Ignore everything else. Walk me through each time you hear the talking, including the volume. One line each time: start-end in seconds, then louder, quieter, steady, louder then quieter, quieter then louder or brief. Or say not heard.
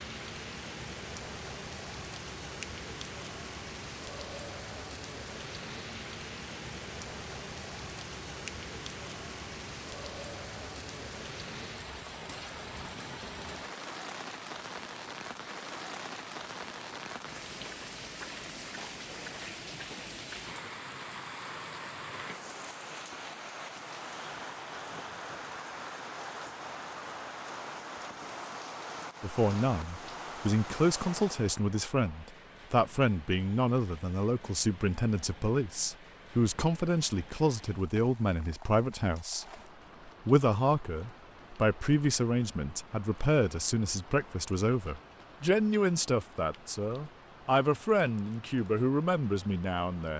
29.2-39.5 steady
40.2-50.1 steady.